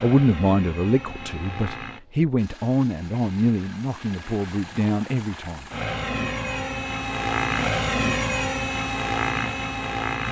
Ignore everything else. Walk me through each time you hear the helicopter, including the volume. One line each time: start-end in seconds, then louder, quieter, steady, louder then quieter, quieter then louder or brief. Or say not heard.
0.0-10.2 quieter then louder.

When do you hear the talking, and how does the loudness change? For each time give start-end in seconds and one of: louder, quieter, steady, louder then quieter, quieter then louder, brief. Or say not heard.
0.0-5.7 steady.